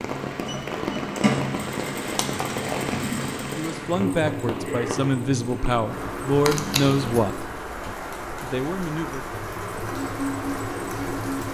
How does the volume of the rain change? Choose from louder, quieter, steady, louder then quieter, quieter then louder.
steady.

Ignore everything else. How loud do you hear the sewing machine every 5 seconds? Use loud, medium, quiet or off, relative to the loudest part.
loud, medium, loud.